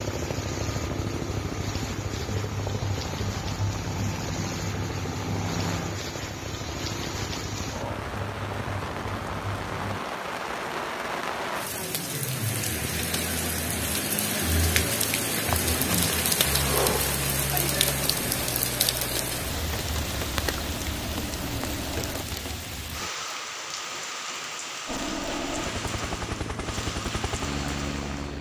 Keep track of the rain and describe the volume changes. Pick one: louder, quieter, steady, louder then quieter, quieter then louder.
louder then quieter.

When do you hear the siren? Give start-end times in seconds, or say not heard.
not heard.